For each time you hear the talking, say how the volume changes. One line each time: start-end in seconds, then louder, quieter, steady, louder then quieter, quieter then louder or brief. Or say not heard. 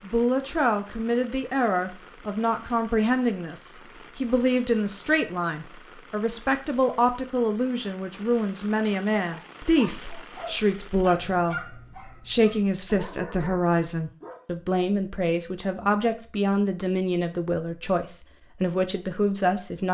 0.1-19.8 steady.